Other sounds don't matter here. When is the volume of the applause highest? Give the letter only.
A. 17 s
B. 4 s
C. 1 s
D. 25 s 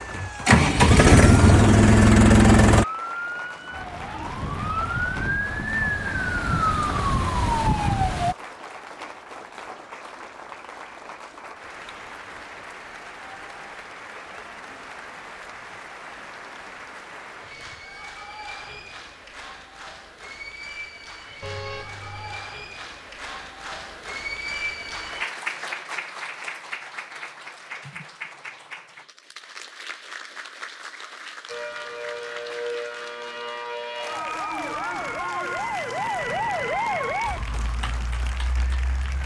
D.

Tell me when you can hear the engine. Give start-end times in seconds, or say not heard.
0.1-2.9.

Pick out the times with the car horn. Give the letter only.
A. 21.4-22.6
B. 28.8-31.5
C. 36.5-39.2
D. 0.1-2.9
A.